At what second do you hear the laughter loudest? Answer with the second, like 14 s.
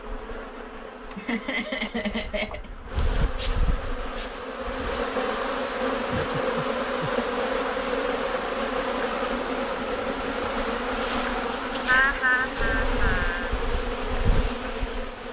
12 s.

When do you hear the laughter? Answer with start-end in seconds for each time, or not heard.
1.0-2.7, 6.0-7.1, 11.8-13.5.